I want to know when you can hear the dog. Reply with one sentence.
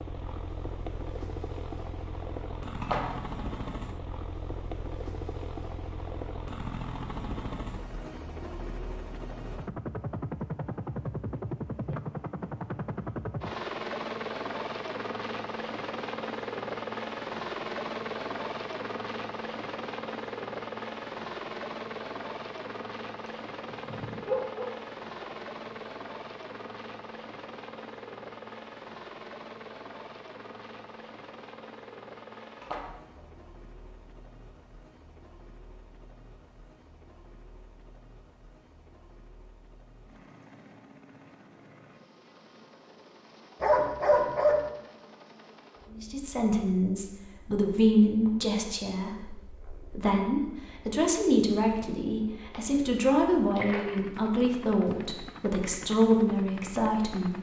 The dog can be heard from 23.7 to 25.3 s and from 43.6 to 44.6 s.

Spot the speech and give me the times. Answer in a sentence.
You can hear the speech from 45.9 to 57.3 s.